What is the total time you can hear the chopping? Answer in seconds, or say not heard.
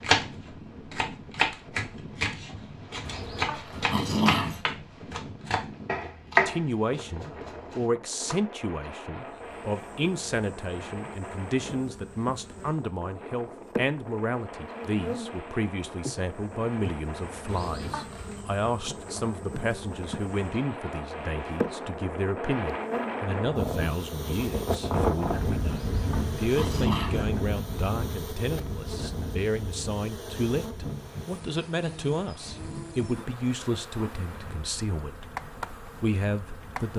8 s.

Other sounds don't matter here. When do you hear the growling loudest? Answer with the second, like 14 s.
4 s.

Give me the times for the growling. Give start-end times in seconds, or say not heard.
3.0-4.6, 17.4-18.4, 25.6-27.2.